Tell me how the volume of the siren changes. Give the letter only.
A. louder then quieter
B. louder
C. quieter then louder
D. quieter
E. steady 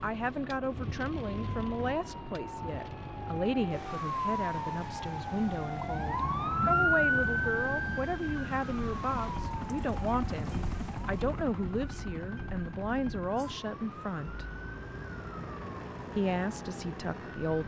A.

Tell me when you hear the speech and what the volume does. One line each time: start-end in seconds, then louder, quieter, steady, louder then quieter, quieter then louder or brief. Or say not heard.
0.0-14.4 steady
16.1-17.6 brief.